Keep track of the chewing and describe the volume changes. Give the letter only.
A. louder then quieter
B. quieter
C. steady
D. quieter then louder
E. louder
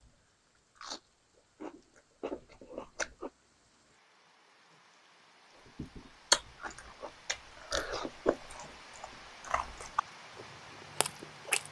A.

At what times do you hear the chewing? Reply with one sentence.
You can hear the chewing from 0.0 to 3.3 s and from 5.8 to 11.6 s.